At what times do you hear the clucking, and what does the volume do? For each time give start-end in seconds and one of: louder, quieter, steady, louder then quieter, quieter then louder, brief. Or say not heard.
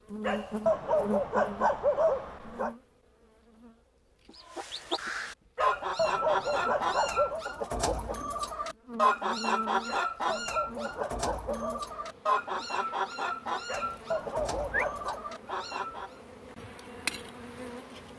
4.3-16.1 quieter.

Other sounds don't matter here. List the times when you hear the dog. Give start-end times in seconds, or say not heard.
0.2-2.7, 5.5-7.5, 9.8-11.8, 13.7-15.2.